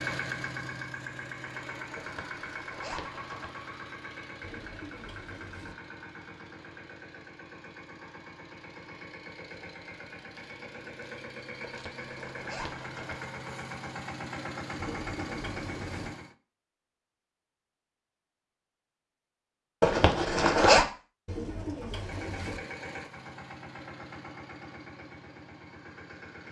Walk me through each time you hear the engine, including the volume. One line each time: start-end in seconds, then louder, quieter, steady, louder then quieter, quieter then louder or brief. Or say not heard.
0.0-16.4 quieter then louder
21.9-26.4 quieter.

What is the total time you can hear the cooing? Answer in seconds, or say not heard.
4 s.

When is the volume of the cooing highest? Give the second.
22 s.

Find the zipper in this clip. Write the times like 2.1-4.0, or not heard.
1.9-3.5, 11.7-13.2, 19.8-20.9.